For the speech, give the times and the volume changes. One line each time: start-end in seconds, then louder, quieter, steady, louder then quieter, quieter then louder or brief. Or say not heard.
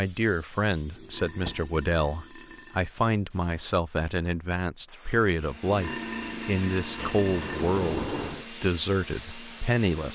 0.0-10.1 steady.